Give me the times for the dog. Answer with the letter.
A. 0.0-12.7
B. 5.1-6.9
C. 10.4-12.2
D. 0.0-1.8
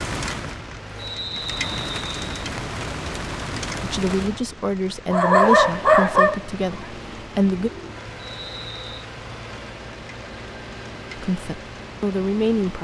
B.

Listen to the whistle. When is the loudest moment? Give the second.
1 s.